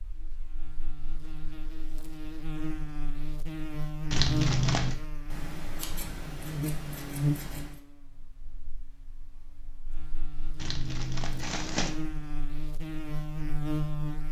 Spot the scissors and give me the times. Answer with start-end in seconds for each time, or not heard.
5.3-7.8.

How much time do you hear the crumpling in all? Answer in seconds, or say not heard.
2 s.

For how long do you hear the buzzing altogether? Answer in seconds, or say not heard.
14 s.